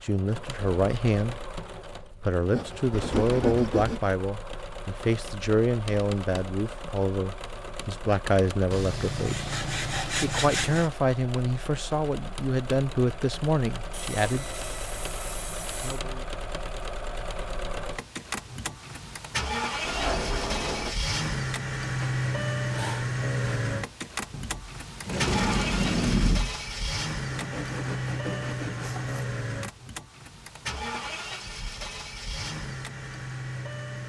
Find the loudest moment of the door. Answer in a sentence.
The volume of the door peaks at 26 seconds.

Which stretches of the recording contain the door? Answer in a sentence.
You can hear the door from 2.9 to 3.8 s, from 19.8 to 20.9 s and from 24.3 to 26.6 s.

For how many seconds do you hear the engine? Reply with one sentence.
You can hear the engine for 34 seconds altogether.